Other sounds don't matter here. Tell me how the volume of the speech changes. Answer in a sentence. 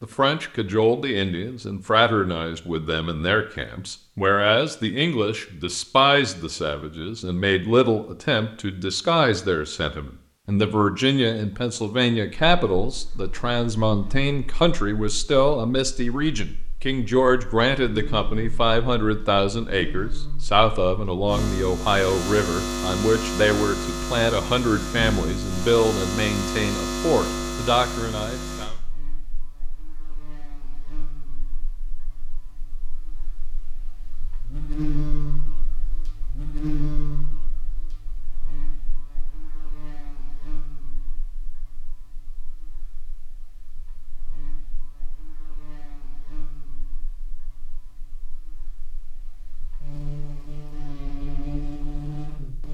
The loudness of the speech stays about the same.